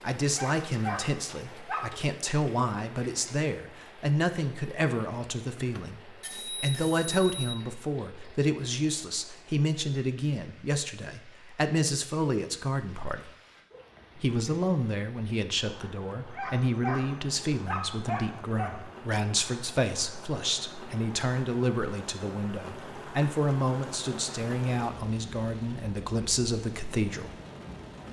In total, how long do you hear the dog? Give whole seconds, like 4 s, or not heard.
4 s.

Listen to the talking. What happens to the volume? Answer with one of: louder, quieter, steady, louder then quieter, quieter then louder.
steady.